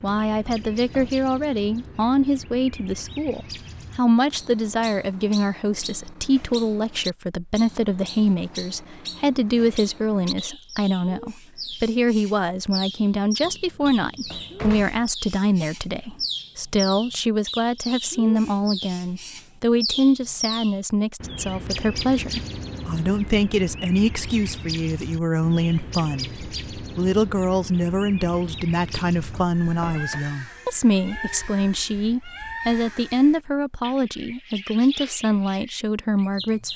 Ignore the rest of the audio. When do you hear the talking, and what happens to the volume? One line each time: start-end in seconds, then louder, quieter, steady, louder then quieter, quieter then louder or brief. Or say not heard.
0.0-36.7 steady.